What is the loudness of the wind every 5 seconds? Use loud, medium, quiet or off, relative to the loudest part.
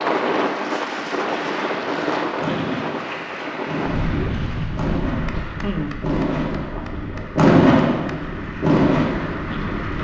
loud, medium.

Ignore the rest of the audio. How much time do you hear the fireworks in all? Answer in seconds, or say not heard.
8 s.